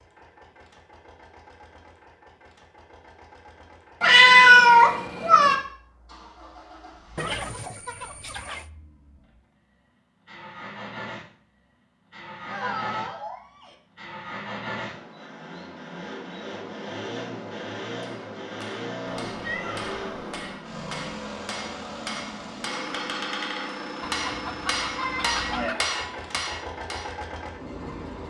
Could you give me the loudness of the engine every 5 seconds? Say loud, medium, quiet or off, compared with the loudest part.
quiet, quiet, loud, loud, loud, loud.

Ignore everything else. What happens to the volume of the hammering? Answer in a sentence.
The loudness of the hammering goes up.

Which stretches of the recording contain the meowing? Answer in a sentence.
You can hear the meowing from 4.0 to 5.5 s, from 12.4 to 13.8 s and from 19.1 to 20.6 s.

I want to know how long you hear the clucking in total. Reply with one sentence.
The clucking can be heard for 3 seconds in total.